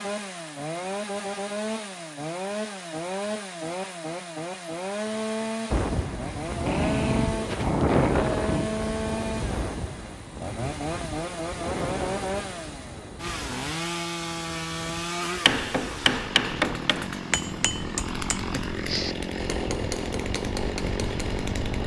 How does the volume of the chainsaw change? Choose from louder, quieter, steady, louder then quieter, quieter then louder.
steady.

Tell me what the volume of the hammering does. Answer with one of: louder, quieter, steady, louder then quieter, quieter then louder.
quieter.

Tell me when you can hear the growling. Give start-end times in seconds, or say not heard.
6.7-8.7.